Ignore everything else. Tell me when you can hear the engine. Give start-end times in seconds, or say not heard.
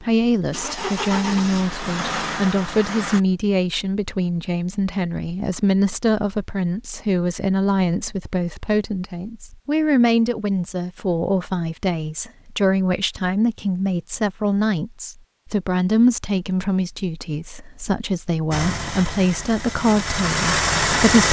0.0-3.2, 18.5-21.2.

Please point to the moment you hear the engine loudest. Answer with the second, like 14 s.
21 s.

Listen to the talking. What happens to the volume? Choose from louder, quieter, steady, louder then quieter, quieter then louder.
steady.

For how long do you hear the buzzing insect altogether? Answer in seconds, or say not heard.
not heard.